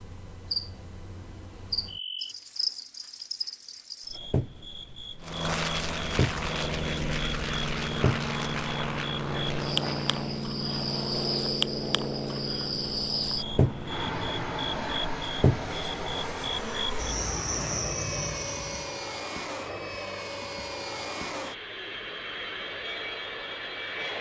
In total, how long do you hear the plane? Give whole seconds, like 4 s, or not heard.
19 s.